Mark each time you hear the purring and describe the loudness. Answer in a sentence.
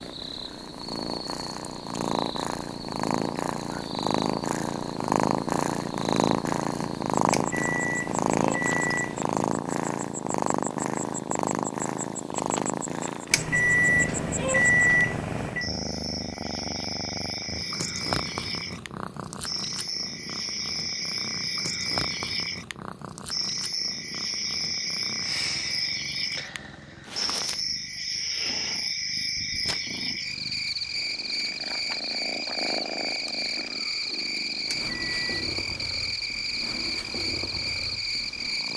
You can hear the purring from 0.0 to 38.7 s, getting quieter.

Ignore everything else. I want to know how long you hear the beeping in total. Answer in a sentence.
The beeping can be heard for 5 seconds in total.